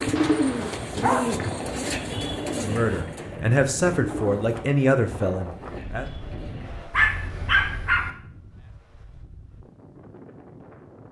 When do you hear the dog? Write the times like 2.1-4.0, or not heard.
0.1-1.4, 6.9-8.1.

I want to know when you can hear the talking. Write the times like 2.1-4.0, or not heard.
2.6-6.0.